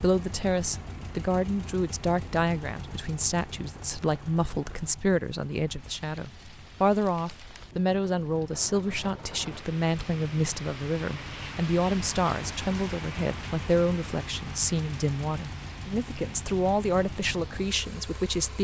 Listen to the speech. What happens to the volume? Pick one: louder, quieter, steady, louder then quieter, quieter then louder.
steady.